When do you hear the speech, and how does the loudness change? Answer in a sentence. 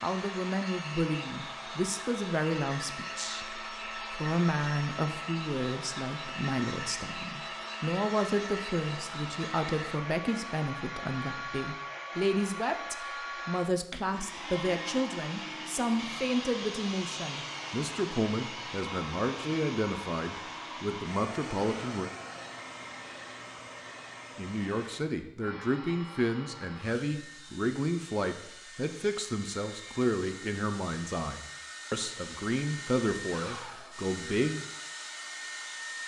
You can hear the speech from 0.0 to 22.1 s, at a steady volume; and from 24.4 to 34.6 s, at a steady volume.